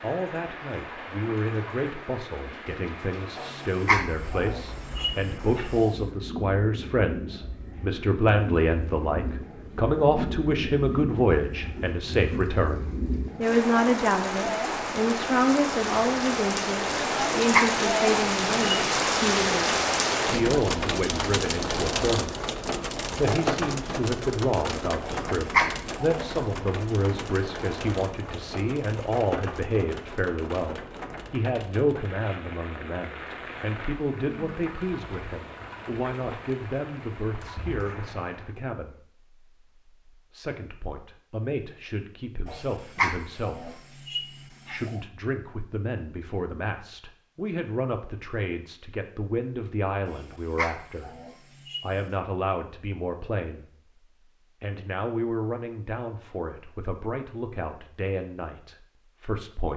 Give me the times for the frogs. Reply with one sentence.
The frogs can't be heard in this clip.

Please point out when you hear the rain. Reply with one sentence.
You can hear the rain from 0.0 to 38.6 s.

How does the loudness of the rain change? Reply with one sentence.
The loudness of the rain goes up, then down.